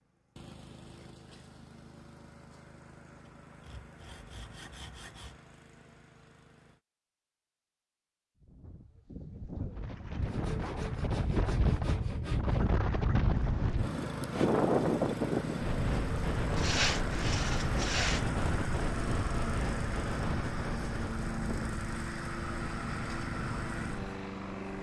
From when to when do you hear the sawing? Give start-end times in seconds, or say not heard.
3.2-5.4, 10.2-12.6, 16.6-18.3.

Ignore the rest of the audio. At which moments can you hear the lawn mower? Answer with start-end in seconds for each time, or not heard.
0.0-6.8, 13.8-24.7.